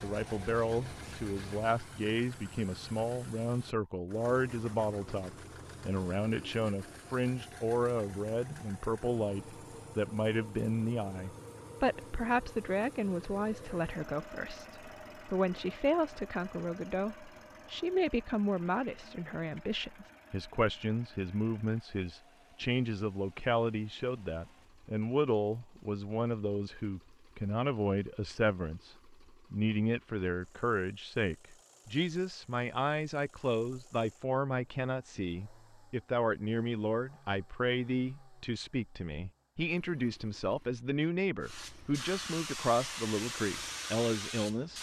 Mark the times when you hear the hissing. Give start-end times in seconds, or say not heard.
0.0-1.7, 41.4-44.7.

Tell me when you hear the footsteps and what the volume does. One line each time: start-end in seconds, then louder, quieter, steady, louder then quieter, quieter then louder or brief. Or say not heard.
not heard.